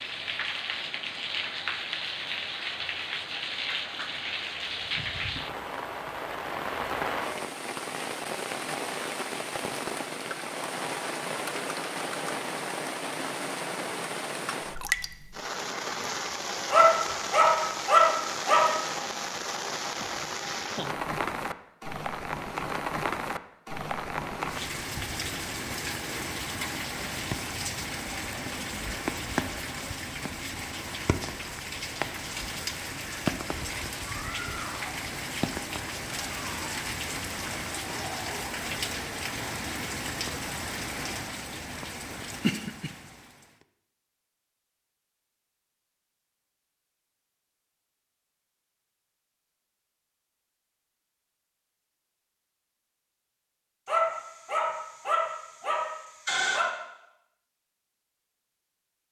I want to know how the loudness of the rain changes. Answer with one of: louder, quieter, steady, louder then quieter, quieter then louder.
steady.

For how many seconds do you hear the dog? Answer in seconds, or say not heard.
5 s.